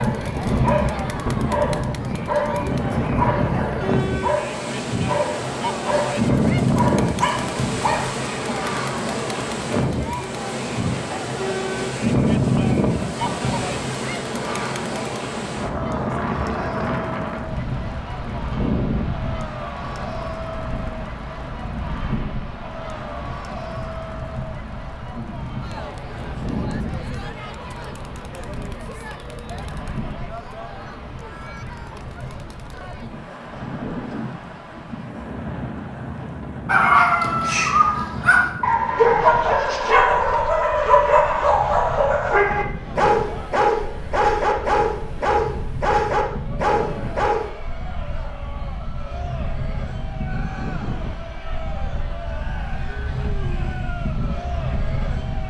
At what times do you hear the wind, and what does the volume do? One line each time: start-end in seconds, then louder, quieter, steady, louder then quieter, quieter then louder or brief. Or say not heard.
0.0-55.4 quieter.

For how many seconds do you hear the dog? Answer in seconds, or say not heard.
19 s.